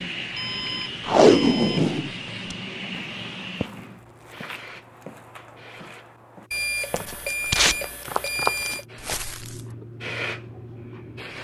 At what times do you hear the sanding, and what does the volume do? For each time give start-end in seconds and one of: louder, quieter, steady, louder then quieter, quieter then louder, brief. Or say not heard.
not heard.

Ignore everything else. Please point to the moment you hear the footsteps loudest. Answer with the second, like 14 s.
8 s.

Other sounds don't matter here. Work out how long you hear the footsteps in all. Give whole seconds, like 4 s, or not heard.
7 s.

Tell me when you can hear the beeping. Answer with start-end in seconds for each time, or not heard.
0.3-1.9, 6.5-8.8.